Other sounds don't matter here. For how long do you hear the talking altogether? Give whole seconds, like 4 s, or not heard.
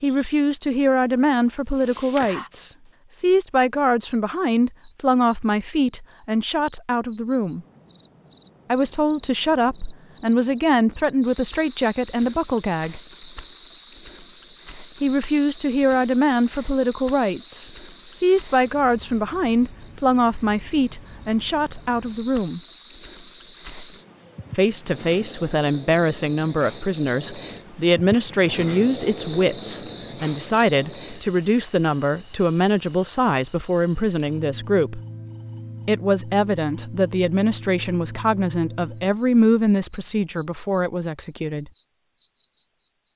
36 s.